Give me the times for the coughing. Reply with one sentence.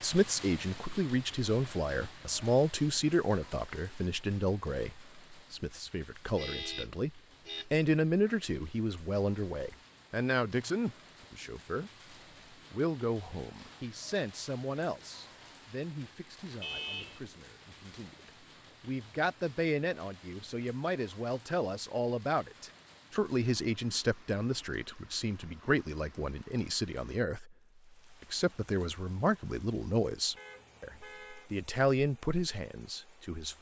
You can't hear the coughing here.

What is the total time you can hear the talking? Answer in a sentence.
You can hear the talking for 32 seconds altogether.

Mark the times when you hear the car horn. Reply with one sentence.
The car horn can be heard from 6.3 to 7.7 s, from 16.6 to 17.2 s and from 30.4 to 31.5 s.